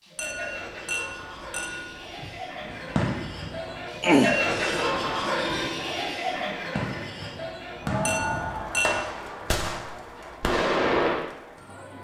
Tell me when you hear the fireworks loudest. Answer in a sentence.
The loudest moment of the fireworks is at 11 seconds.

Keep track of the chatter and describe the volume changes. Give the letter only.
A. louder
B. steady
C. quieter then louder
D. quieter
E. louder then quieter
E.